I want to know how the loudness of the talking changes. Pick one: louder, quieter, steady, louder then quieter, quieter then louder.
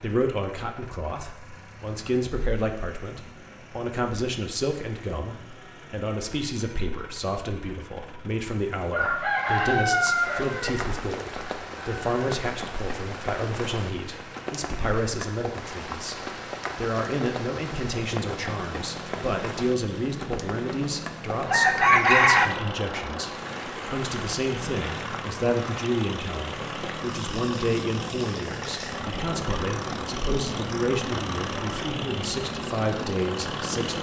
steady.